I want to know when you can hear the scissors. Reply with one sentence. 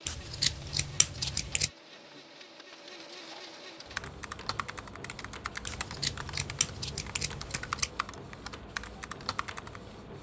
The scissors can be heard from 0.1 to 1.7 s and from 5.7 to 7.9 s.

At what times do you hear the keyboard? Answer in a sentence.
The keyboard can be heard from 4.0 to 9.8 s.